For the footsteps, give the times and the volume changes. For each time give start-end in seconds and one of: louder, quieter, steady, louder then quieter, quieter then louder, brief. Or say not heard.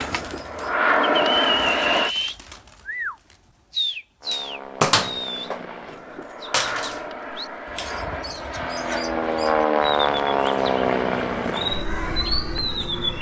not heard.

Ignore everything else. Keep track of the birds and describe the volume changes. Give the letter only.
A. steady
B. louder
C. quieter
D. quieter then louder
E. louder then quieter
D.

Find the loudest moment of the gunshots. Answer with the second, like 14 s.
5 s.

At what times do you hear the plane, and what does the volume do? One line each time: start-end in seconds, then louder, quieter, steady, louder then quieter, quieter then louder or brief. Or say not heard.
0.0-2.1 brief
4.2-13.1 louder then quieter.